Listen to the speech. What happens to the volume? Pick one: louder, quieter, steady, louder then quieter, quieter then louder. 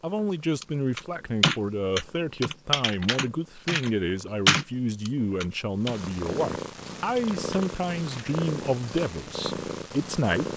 steady.